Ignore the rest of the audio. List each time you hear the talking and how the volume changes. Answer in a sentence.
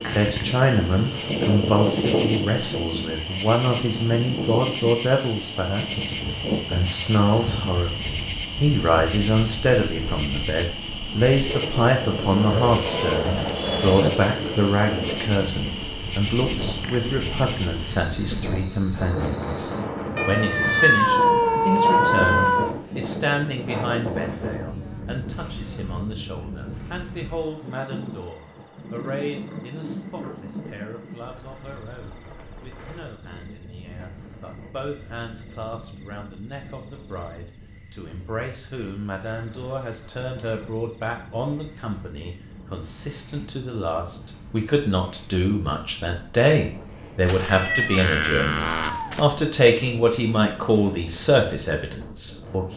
The talking can be heard from 0.0 to 52.7 s, getting quieter then louder.